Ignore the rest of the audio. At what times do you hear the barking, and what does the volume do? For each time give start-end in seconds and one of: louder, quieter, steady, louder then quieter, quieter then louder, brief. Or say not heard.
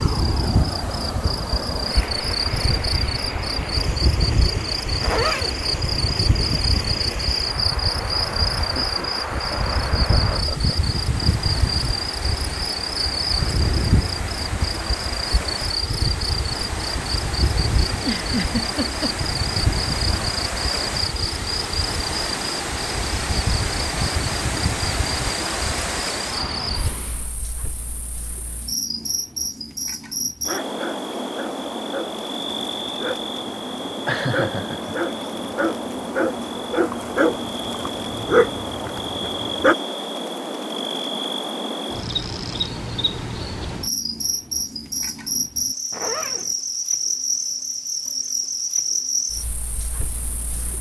30.2-39.8 louder.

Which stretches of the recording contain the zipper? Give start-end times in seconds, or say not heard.
5.0-5.7, 45.9-46.5.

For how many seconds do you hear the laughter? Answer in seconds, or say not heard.
5 s.